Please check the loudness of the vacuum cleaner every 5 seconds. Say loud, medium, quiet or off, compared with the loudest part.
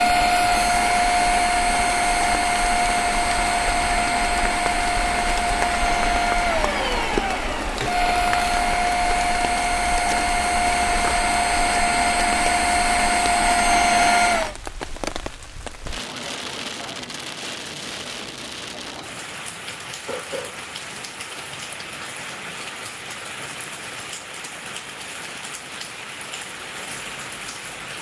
loud, loud, loud, off, off, off.